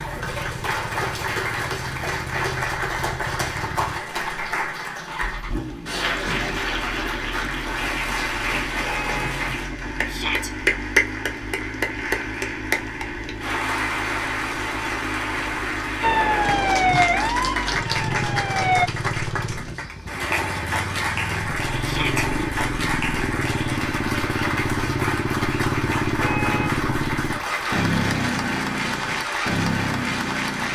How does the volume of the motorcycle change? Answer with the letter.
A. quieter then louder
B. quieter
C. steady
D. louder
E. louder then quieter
D.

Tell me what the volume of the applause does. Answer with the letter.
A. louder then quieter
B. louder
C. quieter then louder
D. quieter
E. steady
E.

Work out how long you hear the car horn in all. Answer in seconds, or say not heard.
2 s.